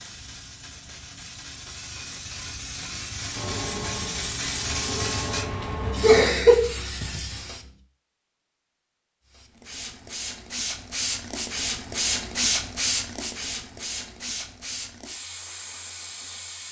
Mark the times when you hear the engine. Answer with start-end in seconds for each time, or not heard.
3.3-6.3.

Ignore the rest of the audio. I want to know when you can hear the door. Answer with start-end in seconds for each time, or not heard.
not heard.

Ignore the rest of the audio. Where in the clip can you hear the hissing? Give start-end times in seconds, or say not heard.
0.0-7.7, 9.2-16.6.